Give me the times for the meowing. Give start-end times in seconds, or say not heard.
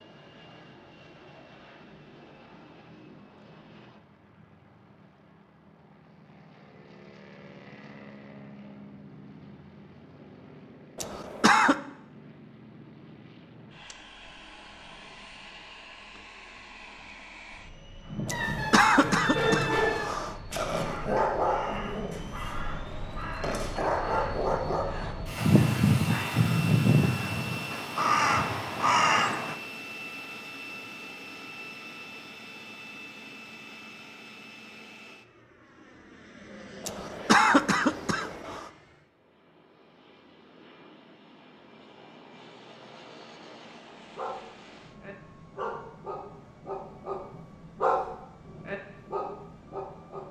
18.3-20.1.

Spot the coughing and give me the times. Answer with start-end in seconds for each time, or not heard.
10.9-11.8, 18.2-20.4, 36.8-38.6.